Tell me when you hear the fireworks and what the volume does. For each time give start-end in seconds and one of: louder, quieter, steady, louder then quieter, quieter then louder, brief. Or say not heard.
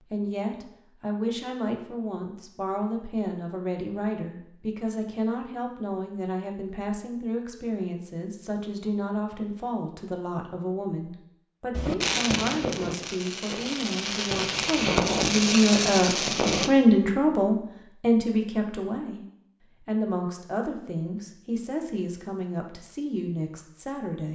11.7-16.7 quieter then louder.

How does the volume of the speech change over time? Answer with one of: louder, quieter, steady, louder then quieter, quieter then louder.
louder then quieter.